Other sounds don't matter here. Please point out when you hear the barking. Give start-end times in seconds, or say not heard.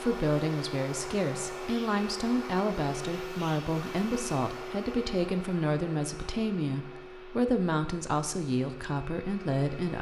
not heard.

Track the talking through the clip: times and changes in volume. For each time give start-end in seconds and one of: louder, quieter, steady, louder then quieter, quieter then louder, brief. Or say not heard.
0.0-9.9 steady.